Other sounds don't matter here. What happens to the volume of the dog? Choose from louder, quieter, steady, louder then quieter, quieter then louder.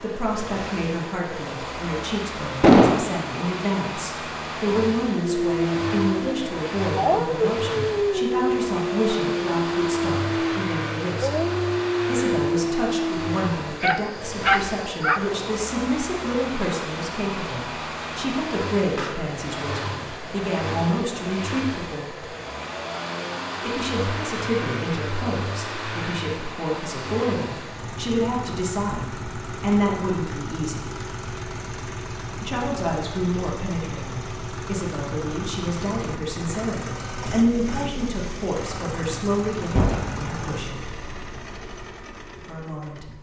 steady.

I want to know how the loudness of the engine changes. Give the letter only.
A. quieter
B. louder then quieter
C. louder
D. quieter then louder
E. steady
E.